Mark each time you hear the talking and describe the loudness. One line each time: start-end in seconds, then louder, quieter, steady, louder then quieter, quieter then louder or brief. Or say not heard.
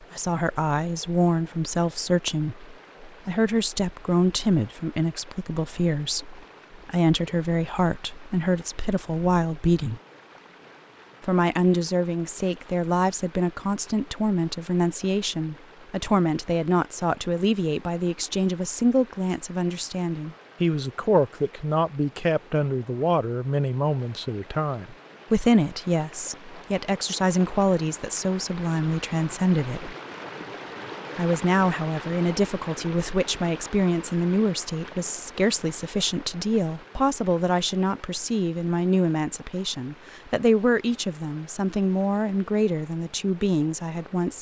0.1-10.0 steady
11.2-29.9 steady
31.1-44.3 steady.